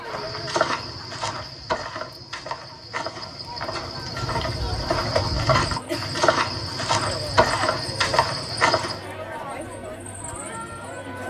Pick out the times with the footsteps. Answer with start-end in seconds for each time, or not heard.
0.1-9.1.